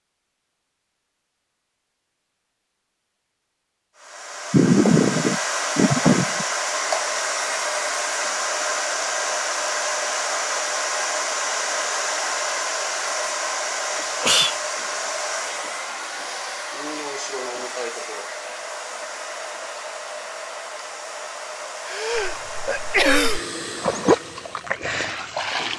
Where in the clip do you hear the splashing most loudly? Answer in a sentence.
The loudest moment of the splashing is at 24 seconds.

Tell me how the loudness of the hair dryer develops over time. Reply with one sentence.
The volume of the hair dryer goes down.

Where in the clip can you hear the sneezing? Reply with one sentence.
The sneezing can be heard from 4.5 to 6.5 s, from 14.0 to 14.6 s and from 21.9 to 23.4 s.